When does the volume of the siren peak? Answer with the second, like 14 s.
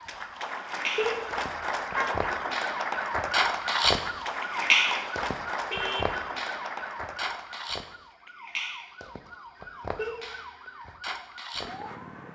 4 s.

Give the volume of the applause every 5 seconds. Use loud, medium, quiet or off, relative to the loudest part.
loud, loud, off.